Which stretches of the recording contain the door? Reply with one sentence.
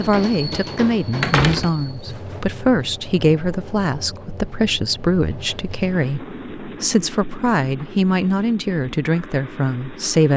The door can be heard from 1.2 to 2.4 s.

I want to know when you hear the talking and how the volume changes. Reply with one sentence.
The talking can be heard from 0.0 to 10.3 s, at a steady volume.